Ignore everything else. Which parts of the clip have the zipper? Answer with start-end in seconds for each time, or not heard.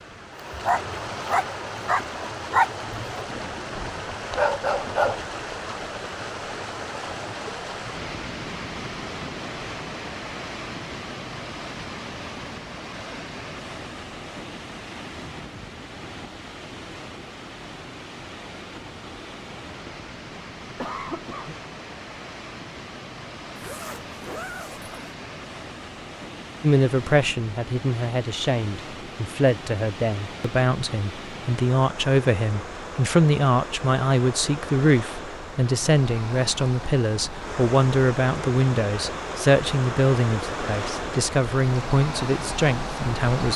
23.6-24.9.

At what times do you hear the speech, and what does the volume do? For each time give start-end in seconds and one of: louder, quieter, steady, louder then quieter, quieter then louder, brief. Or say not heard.
26.6-43.5 steady.